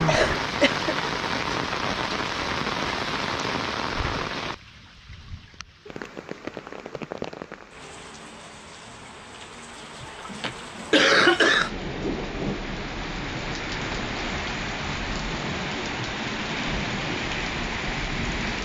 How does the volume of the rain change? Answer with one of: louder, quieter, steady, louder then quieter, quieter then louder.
quieter then louder.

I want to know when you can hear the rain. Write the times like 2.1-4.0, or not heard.
0.0-18.6.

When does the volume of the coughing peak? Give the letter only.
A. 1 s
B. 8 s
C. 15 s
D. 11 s
D.